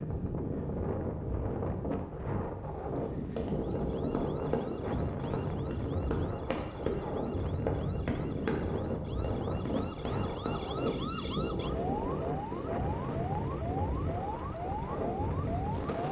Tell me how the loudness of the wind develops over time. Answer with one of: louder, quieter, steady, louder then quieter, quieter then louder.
steady.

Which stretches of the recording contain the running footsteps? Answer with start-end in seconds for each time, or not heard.
3.0-11.0.